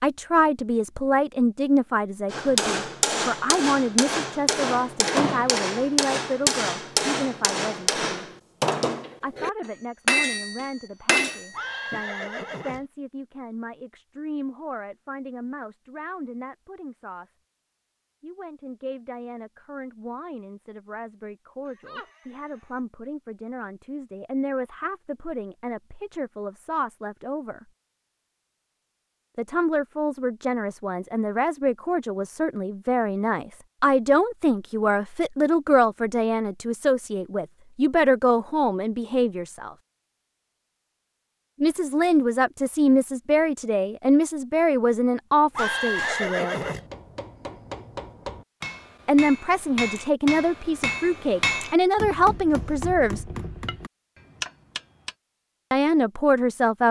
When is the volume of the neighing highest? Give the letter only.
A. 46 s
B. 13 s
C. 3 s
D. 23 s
A.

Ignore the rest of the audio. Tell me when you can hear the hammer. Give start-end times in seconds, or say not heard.
2.3-12.0, 45.5-55.1.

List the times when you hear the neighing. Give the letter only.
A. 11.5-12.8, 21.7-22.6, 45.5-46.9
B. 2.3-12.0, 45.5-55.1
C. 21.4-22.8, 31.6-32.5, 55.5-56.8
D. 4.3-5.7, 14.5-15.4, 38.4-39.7
A.